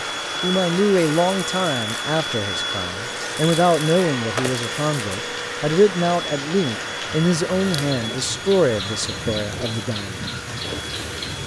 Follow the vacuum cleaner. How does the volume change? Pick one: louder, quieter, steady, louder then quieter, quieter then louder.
quieter.